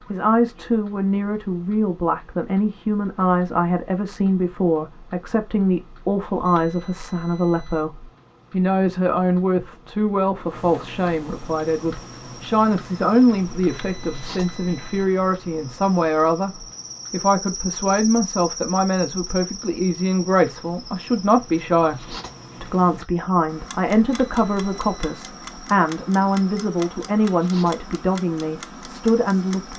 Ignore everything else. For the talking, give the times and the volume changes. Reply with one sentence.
The talking can be heard from 0.1 to 29.7 s, at a steady volume.